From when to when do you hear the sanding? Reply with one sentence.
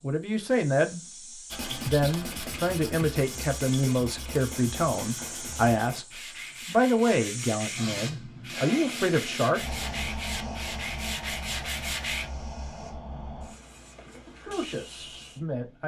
You can hear the sanding from 1.5 to 12.3 s.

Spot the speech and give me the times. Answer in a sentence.
You can hear the speech from 0.0 to 9.8 s and from 14.2 to 15.8 s.